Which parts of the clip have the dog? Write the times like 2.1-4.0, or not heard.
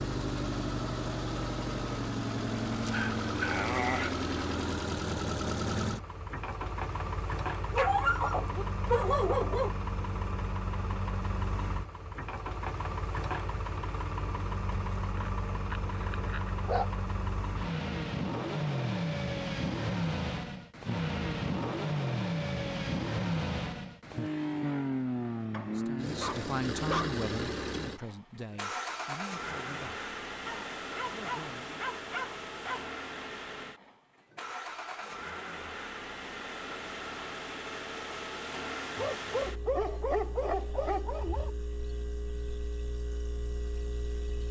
2.9-4.2, 7.7-9.7, 15.2-16.9, 25.5-27.2, 30.4-32.9, 39.0-41.5.